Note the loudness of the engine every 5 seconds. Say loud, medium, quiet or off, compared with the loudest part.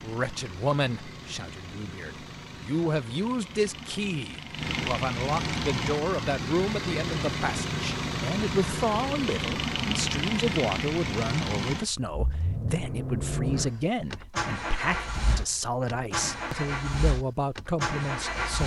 medium, loud, loud, loud.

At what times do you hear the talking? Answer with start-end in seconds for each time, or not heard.
0.0-18.6.